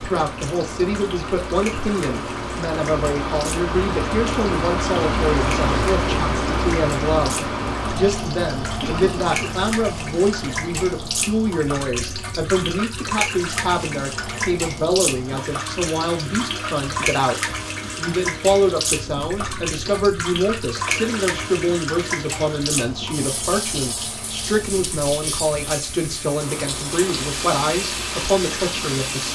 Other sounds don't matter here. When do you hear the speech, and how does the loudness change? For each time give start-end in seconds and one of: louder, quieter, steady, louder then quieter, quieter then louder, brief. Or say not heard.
0.0-29.3 steady.